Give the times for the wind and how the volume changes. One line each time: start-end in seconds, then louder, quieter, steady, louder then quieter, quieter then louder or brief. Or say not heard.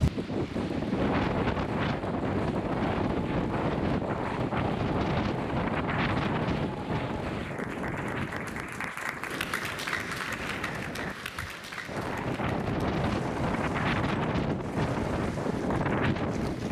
0.0-16.6 quieter then louder.